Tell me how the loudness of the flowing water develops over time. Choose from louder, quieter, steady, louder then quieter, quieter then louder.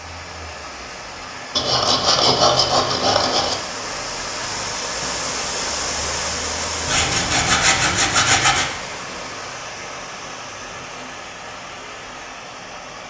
louder then quieter.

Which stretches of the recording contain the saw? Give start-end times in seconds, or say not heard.
1.6-3.5, 6.8-8.7.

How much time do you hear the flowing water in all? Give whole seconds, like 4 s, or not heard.
13 s.